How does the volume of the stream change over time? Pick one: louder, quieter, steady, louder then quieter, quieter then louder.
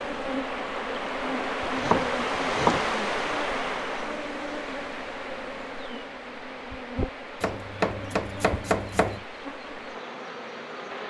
quieter.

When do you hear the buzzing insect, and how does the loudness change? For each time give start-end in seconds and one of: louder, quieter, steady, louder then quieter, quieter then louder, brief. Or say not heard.
0.0-11.0 quieter.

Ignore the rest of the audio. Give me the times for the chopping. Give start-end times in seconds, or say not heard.
1.6-3.4, 7.4-9.2.